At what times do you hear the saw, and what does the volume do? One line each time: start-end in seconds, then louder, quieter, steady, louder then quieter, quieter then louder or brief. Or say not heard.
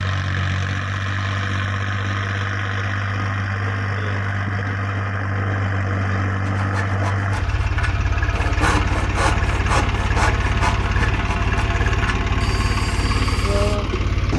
6.5-13.8 louder then quieter.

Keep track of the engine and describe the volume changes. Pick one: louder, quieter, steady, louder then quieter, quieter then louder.
steady.